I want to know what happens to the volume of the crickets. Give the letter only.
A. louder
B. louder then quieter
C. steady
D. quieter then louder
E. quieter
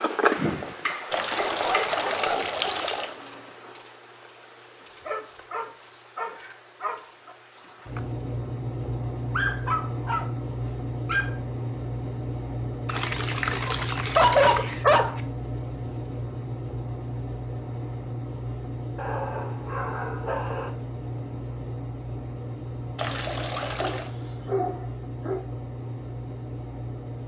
E.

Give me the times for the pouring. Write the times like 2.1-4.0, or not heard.
1.1-3.1, 12.8-14.8, 22.9-24.1.